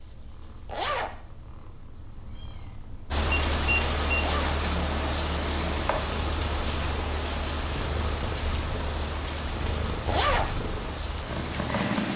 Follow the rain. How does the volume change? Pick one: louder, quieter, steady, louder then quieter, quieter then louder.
quieter.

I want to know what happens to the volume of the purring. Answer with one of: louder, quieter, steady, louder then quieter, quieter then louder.
louder.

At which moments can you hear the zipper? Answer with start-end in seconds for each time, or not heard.
0.7-1.2, 4.2-4.7, 10.1-10.6.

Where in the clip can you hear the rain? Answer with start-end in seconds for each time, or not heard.
3.1-12.1.